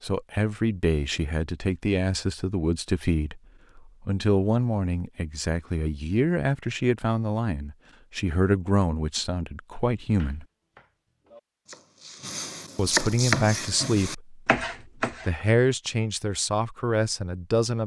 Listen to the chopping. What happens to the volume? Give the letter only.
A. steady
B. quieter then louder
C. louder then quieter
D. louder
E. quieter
D.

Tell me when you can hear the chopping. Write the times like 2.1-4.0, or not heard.
10.2-15.4.